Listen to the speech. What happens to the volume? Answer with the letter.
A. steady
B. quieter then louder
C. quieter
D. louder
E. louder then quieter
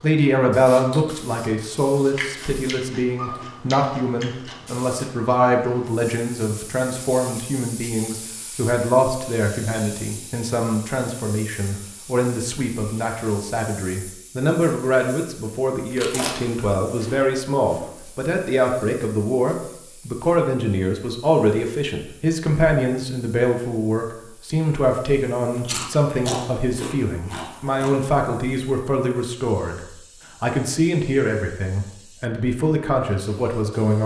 A.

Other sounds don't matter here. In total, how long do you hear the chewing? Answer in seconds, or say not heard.
7 s.